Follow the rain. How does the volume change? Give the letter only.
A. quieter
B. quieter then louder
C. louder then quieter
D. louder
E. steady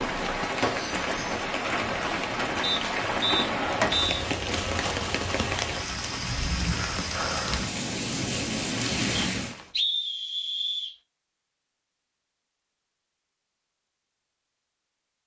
E.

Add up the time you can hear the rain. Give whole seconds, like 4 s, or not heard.
10 s.